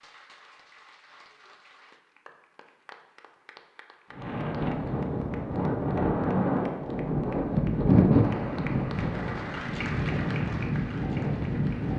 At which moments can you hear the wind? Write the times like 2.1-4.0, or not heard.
4.2-11.9.